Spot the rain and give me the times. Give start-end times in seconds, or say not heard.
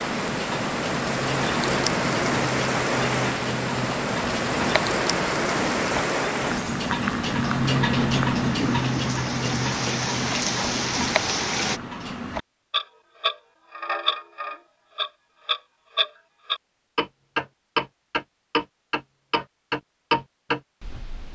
0.0-11.8.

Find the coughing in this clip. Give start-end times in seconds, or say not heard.
not heard.